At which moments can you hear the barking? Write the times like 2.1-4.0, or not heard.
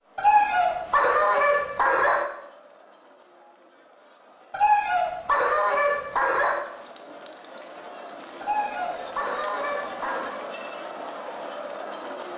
0.1-2.2, 4.5-6.7, 8.4-10.3.